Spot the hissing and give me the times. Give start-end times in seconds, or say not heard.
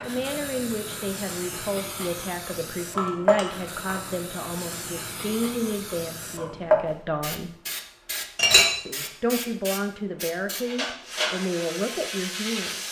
0.0-12.8.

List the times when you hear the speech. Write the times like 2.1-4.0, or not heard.
0.0-7.5, 8.8-12.8.